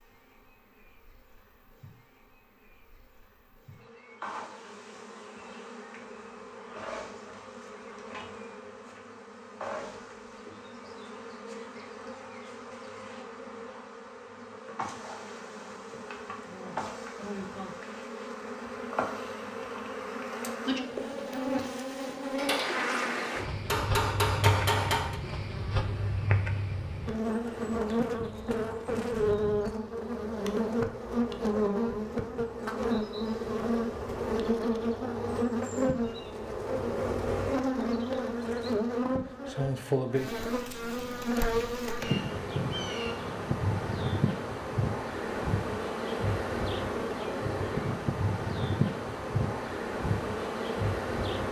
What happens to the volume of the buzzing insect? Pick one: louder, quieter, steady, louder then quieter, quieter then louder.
louder.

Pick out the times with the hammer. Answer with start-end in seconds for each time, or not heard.
22.4-22.9, 23.6-25.2.